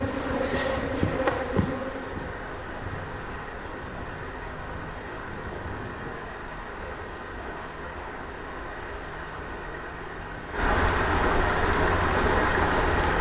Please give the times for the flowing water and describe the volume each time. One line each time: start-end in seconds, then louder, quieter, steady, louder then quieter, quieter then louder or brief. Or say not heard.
0.0-13.1 louder.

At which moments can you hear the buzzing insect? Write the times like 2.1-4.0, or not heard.
0.0-6.2.